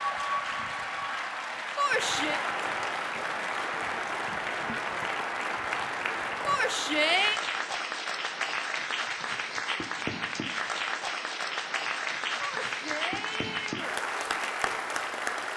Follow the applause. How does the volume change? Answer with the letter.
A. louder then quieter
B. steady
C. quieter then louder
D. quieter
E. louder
B.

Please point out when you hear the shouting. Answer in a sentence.
You can hear the shouting from 1.8 to 2.4 s, from 6.5 to 7.4 s and from 12.4 to 13.9 s.